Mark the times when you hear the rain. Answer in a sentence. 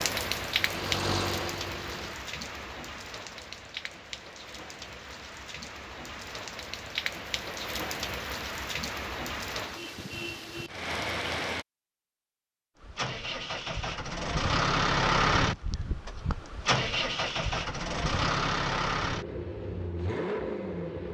You can hear the rain from 0.0 to 11.7 s.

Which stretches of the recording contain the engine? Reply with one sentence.
The engine can be heard from 0.0 to 2.1 s and from 12.8 to 21.1 s.